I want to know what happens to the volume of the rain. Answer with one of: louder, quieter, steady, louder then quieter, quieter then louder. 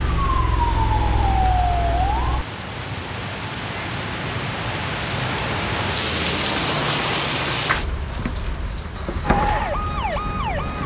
louder then quieter.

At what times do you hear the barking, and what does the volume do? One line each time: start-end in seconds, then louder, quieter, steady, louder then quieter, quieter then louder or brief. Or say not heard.
not heard.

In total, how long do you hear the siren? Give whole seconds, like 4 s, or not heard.
4 s.